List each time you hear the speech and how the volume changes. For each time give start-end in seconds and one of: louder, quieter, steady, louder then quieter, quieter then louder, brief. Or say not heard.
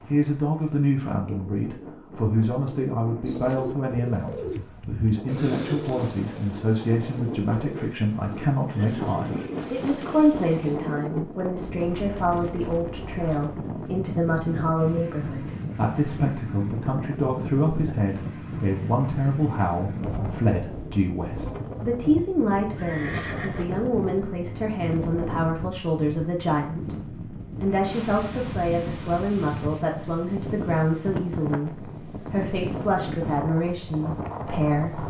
0.1-35.0 steady.